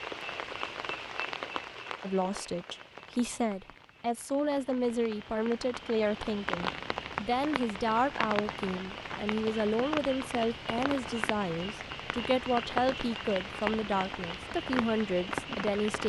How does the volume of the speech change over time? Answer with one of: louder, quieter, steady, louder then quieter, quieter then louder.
steady.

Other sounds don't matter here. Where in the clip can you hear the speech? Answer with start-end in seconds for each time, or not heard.
2.0-16.0.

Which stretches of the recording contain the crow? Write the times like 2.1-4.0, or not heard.
not heard.